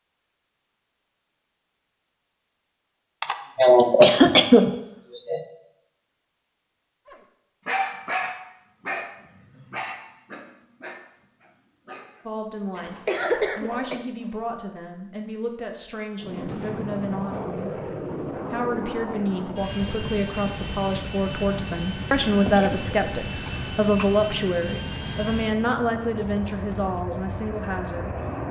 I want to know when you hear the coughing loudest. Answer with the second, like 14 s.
4 s.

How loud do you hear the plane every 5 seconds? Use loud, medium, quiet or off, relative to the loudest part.
off, off, off, loud, loud, loud.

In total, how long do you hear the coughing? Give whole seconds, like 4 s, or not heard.
5 s.